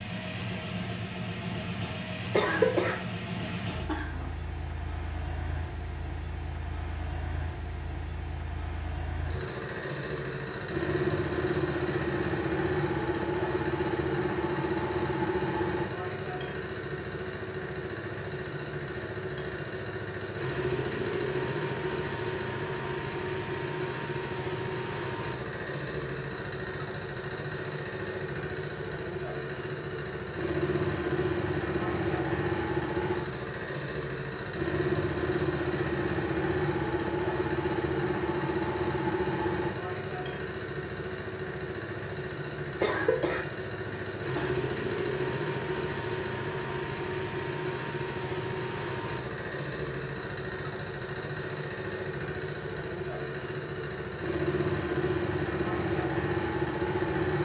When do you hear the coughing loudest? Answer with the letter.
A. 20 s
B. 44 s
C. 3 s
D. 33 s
C.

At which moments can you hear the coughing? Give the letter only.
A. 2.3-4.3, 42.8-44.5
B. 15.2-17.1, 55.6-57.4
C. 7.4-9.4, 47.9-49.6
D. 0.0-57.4
A.